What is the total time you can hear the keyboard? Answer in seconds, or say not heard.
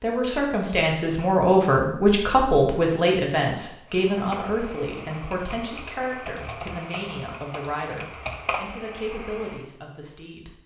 6 s.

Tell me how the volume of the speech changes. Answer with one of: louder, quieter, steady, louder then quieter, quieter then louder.
quieter.